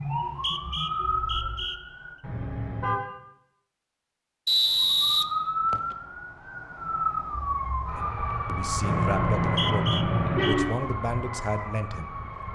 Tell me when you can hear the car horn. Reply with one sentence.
You can hear the car horn from 2.2 to 3.0 s and from 8.8 to 10.8 s.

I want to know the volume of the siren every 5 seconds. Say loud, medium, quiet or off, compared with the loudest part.
loud, loud, medium.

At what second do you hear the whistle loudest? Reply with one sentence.
The loudest moment of the whistle is at 5 seconds.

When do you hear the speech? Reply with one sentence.
You can hear the speech from 8.0 to 12.5 s.